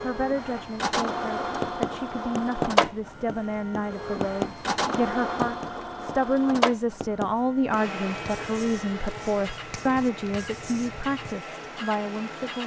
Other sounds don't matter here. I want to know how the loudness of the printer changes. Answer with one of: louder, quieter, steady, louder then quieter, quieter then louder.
quieter.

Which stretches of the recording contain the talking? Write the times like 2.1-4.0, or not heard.
0.0-12.6.